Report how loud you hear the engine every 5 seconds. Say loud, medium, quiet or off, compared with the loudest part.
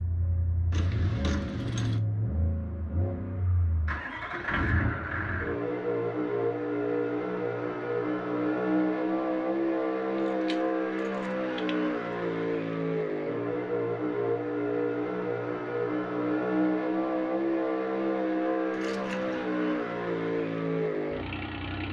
medium, loud, loud, loud, loud.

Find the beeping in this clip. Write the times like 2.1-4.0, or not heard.
not heard.